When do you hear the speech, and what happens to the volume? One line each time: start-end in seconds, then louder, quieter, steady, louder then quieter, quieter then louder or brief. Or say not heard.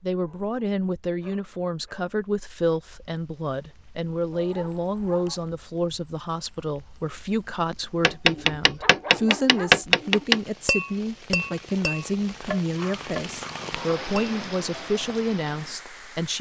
0.0-16.3 steady.